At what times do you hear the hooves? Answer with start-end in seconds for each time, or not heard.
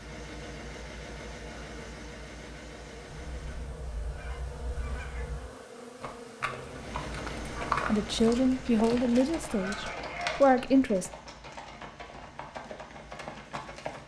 6.0-14.0.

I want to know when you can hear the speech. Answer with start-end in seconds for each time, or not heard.
7.8-11.1.